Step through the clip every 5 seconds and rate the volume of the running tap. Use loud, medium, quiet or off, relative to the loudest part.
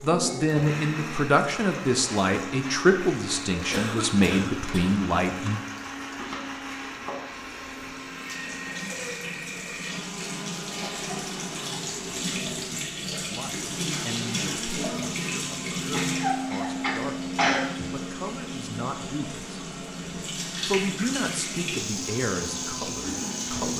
medium, medium, loud, loud, loud.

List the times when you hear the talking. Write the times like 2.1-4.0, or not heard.
0.0-5.6, 13.2-17.3, 17.9-19.6, 20.6-23.7.